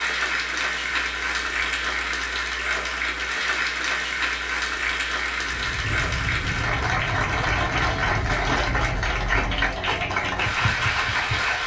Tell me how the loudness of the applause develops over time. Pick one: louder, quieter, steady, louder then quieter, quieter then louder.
steady.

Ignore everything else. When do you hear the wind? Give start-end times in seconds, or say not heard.
5.4-11.6.